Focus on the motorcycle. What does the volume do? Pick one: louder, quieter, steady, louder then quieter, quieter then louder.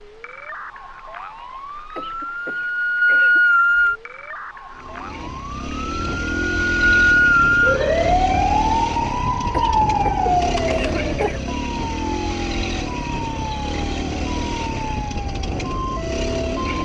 steady.